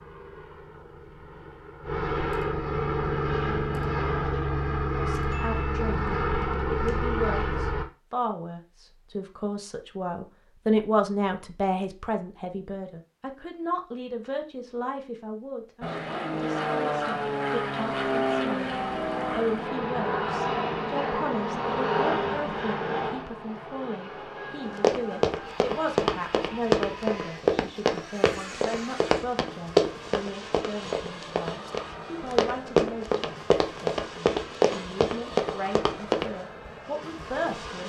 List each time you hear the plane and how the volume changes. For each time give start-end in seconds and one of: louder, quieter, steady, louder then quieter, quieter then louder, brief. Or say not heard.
0.0-7.8 louder
15.8-37.8 quieter.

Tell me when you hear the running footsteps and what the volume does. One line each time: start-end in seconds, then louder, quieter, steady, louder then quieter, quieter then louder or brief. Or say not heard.
24.6-36.3 steady.